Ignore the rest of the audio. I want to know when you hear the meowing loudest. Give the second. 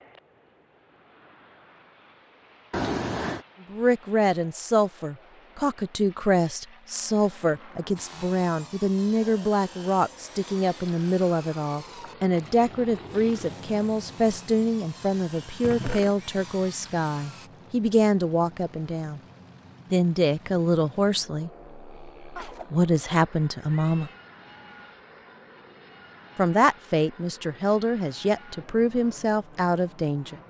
3 s.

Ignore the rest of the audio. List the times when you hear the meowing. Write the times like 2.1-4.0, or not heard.
2.7-3.5, 15.2-16.3, 22.4-24.2.